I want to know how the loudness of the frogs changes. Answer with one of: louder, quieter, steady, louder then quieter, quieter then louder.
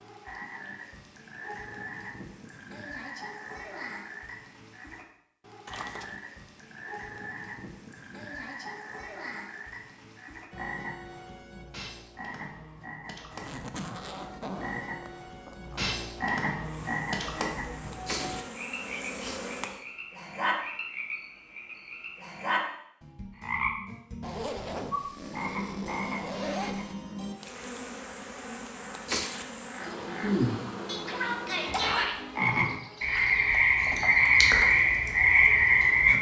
louder.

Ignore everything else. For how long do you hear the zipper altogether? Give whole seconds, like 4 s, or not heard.
6 s.